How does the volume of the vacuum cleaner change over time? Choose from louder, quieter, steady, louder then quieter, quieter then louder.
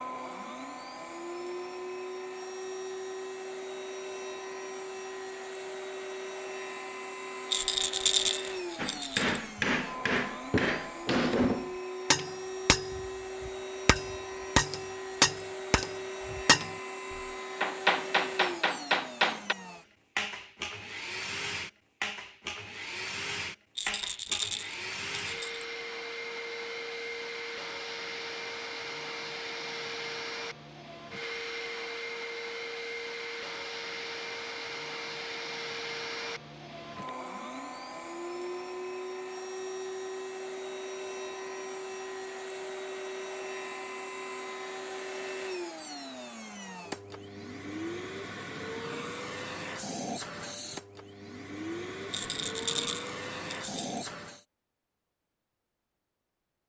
steady.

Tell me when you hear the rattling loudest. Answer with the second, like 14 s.
8 s.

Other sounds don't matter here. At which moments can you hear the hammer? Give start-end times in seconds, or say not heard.
8.8-19.6.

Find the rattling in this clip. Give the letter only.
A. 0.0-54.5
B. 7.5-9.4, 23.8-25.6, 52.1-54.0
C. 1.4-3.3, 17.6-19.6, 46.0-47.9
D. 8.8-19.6
B.